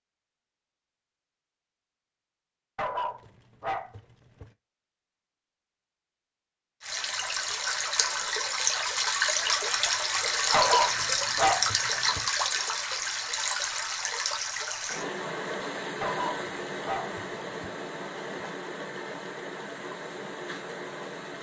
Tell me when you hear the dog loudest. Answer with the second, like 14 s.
11 s.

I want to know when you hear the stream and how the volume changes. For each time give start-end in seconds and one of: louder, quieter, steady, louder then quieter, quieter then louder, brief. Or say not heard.
6.8-21.3 quieter.